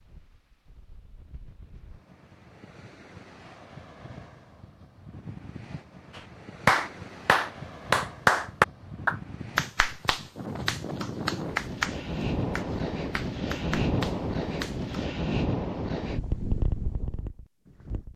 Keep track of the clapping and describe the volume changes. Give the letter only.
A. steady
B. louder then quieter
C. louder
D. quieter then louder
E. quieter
E.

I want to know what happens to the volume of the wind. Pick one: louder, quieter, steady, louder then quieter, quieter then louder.
louder.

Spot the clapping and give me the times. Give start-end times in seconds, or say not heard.
6.2-15.1.